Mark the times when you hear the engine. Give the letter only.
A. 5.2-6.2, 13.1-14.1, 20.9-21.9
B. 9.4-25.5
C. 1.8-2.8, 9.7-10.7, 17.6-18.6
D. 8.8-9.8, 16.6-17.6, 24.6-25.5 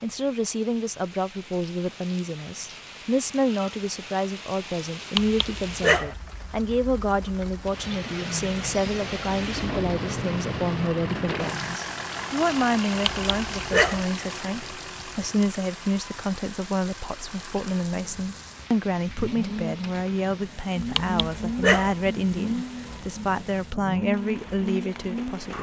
B.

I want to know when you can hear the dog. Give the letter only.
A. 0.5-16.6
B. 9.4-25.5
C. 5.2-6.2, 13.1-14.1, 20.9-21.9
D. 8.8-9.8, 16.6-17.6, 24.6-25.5
C.